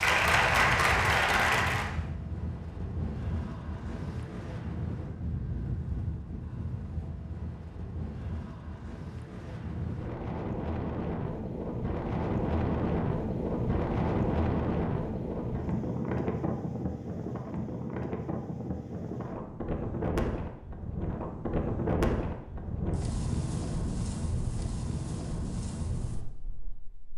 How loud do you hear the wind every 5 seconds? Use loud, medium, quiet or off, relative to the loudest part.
medium, medium, loud, loud, loud, medium.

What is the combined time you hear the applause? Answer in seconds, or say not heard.
2 s.